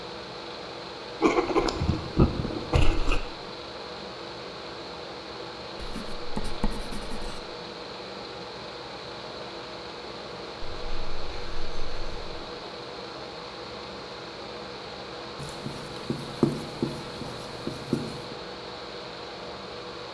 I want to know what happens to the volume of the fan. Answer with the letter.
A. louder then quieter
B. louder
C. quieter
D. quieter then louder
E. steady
E.